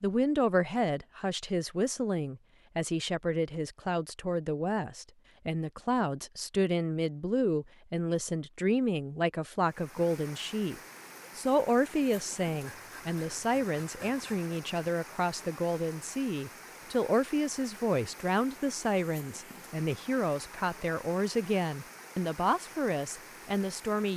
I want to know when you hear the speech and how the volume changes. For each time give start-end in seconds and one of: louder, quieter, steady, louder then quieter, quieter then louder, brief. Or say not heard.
0.0-24.1 steady.